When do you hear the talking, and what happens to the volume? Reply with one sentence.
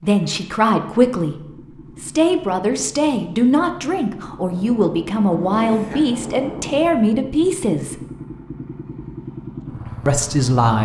You can hear the talking from 0.0 to 8.0 s, at a steady volume; and briefly from 10.1 to 10.8 s.